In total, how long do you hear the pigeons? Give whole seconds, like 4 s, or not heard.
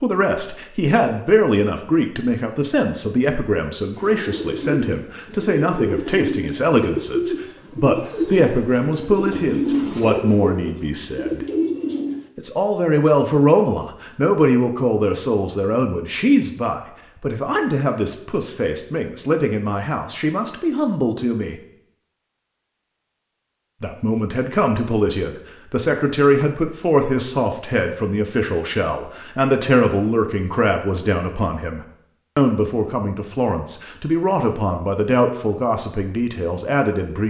8 s.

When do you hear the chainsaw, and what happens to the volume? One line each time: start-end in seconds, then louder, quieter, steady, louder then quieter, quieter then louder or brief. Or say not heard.
not heard.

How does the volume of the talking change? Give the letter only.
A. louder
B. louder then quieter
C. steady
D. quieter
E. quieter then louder
C.